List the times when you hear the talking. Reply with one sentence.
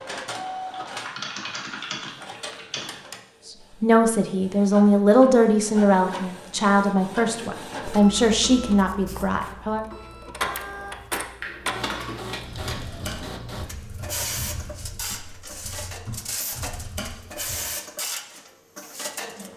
You can hear the talking from 3.8 to 9.8 s.